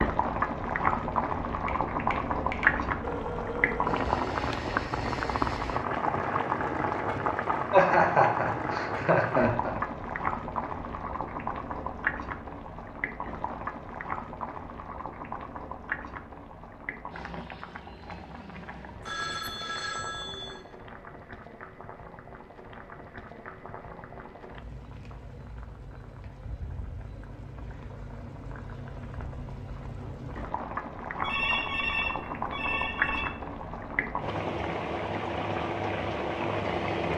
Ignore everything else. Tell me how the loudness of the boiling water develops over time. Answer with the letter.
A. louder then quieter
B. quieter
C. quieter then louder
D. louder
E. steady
C.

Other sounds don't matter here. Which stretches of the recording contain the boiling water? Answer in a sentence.
You can hear the boiling water from 0.0 to 37.1 s.